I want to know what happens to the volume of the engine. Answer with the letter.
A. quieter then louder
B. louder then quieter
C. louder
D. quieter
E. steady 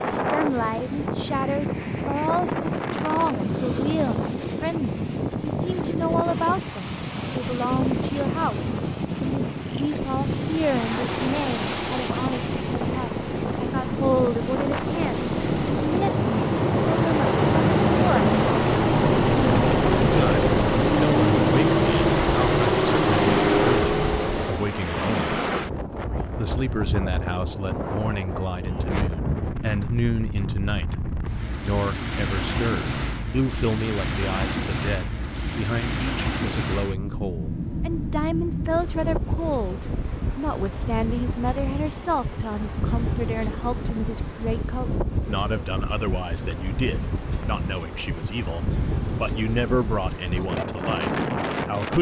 C.